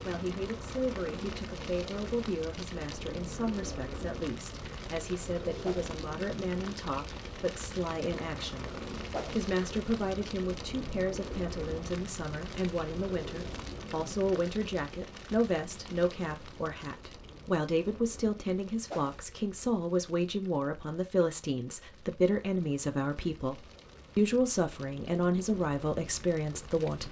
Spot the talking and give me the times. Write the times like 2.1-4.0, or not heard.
0.0-27.0.